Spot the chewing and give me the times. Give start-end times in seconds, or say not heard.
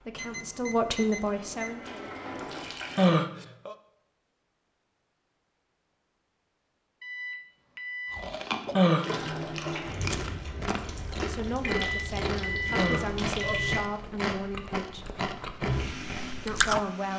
8.1-16.8.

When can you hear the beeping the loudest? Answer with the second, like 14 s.
13 s.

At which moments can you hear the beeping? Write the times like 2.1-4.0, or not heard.
0.1-1.8, 7.0-8.2, 11.8-13.7.